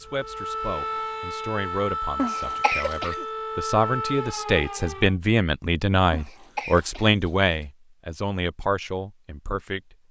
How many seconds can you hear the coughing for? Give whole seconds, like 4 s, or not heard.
3 s.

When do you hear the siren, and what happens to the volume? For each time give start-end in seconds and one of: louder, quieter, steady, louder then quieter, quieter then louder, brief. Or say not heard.
0.0-5.2 steady.